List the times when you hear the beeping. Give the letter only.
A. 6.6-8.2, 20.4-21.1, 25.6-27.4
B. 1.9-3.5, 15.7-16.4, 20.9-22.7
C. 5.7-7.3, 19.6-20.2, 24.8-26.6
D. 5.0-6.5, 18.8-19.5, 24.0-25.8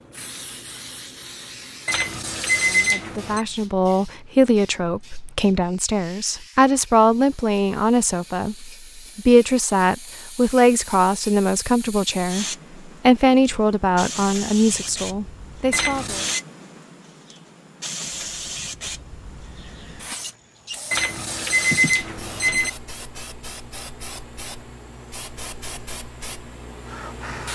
B.